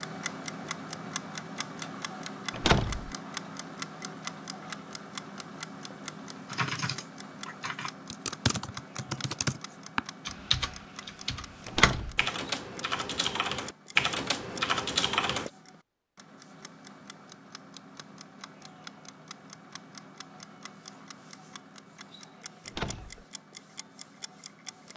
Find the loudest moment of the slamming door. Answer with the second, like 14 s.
3 s.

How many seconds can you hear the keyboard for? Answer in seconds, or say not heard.
9 s.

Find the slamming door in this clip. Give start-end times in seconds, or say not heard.
2.5-3.1, 11.7-12.2, 22.6-23.2.